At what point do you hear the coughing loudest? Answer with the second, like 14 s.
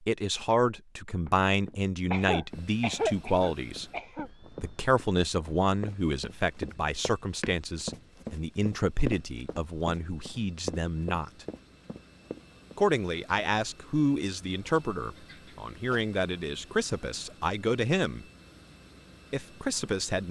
3 s.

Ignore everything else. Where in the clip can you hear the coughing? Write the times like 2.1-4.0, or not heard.
2.1-4.3, 14.7-16.1.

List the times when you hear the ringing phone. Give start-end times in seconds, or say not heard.
not heard.